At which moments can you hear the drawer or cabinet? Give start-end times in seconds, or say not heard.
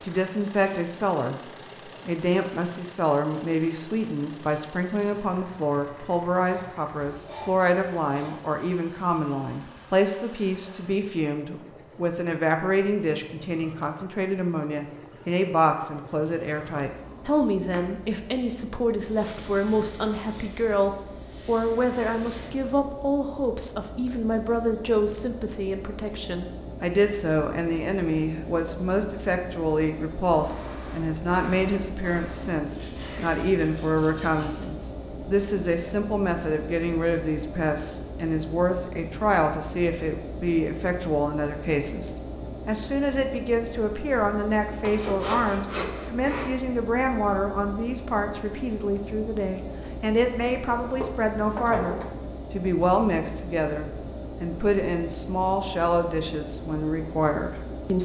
16.9-17.9, 51.0-52.1.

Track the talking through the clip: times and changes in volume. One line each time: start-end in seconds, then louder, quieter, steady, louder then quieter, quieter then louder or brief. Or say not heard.
0.0-58.0 steady.